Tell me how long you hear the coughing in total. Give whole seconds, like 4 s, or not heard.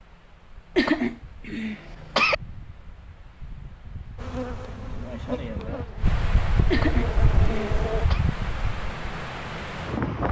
3 s.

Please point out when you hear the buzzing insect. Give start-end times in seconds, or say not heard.
4.2-8.1.